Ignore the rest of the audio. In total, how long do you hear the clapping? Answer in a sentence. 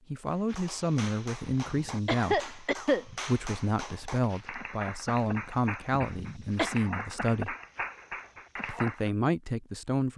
You can hear the clapping for 9 seconds altogether.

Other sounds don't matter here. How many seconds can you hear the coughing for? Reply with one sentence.
The coughing can be heard for 2 seconds in total.